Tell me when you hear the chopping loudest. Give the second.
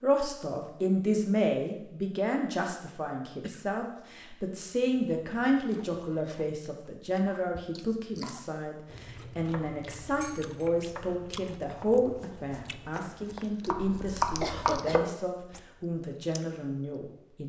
14 s.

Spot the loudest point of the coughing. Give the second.
15 s.